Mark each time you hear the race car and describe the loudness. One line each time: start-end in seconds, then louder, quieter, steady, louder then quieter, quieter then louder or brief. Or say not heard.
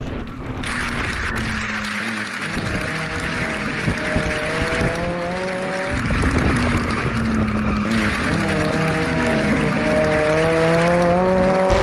0.0-11.7 louder.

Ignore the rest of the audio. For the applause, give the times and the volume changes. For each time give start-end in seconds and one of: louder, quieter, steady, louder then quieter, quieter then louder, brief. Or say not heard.
0.0-11.7 steady.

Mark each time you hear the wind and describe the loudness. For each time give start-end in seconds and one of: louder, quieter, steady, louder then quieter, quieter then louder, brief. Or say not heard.
0.0-11.5 louder then quieter.